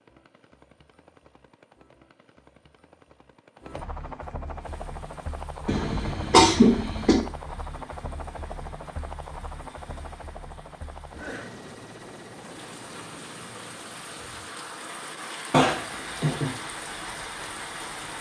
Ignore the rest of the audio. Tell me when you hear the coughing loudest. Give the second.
7 s.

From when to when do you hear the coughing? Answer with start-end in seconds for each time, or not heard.
5.7-7.2, 15.5-16.5.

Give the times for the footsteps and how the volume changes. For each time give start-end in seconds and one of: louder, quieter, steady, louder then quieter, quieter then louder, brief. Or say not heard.
not heard.